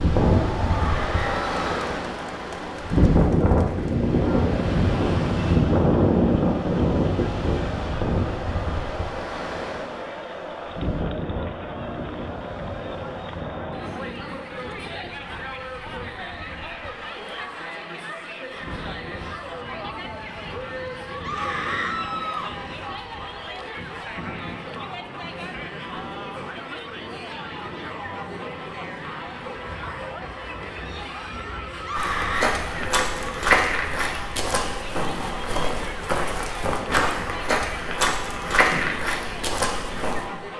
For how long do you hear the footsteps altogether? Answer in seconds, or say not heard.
8 s.